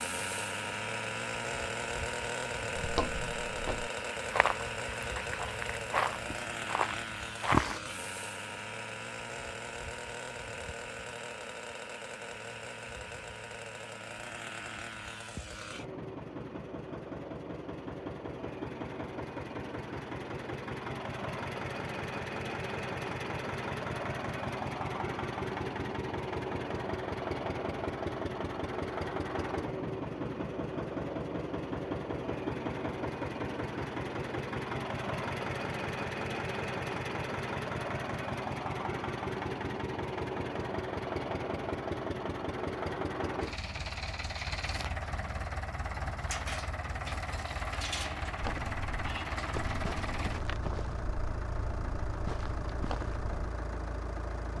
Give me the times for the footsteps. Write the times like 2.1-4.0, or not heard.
2.8-7.8, 48.4-53.5.